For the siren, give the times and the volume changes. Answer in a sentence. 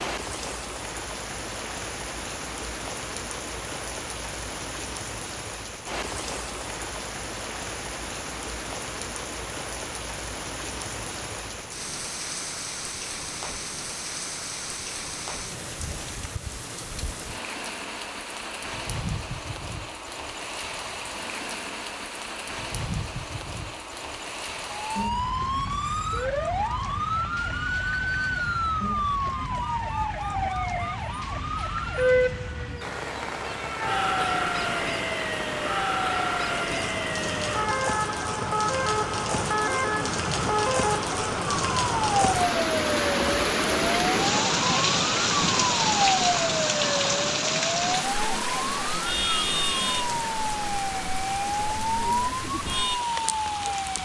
You can hear the siren from 24.8 to 54.0 s, at a steady volume.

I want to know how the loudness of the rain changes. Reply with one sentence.
The loudness of the rain goes up.